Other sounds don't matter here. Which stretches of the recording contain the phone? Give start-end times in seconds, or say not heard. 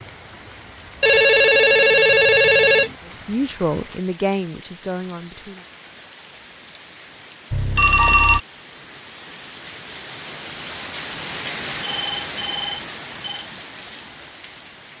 1.0-2.9, 7.5-8.4, 11.8-13.5.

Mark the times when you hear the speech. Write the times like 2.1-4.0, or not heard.
3.2-5.7.